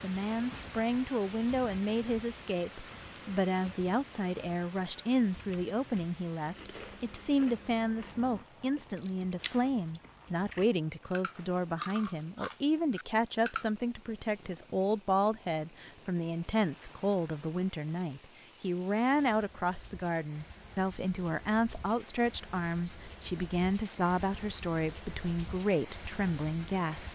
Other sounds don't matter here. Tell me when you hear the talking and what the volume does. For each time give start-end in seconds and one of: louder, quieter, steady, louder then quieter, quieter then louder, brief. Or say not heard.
0.0-27.1 steady.